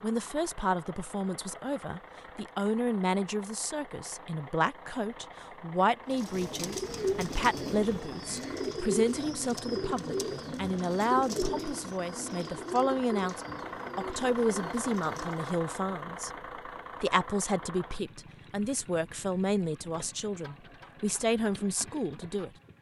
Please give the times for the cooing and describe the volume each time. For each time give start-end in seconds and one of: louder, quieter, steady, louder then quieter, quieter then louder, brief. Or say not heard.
6.1-15.6 quieter.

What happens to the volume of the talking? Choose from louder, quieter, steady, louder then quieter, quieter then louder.
steady.